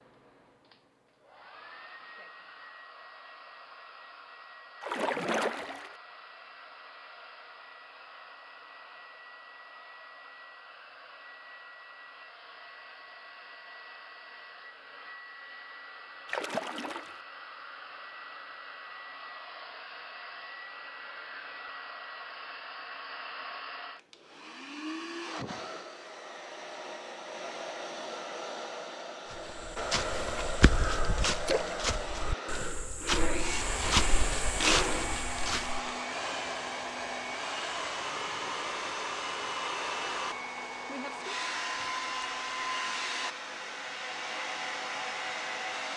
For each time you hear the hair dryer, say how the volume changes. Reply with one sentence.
The hair dryer can be heard from 0.0 to 45.9 s, getting louder.